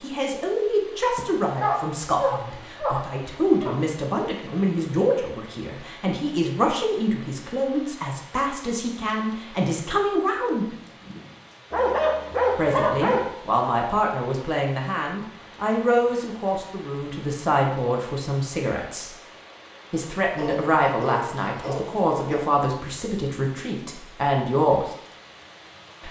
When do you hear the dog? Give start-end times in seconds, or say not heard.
1.1-3.8, 11.7-13.3, 20.4-22.5.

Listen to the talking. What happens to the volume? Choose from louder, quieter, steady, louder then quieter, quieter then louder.
steady.